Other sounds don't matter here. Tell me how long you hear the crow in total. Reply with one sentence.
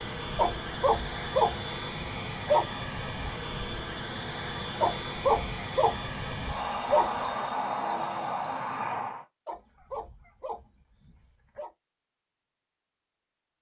You can't hear the crow here.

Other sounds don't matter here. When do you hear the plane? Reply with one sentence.
You can hear the plane from 0.0 to 9.2 s.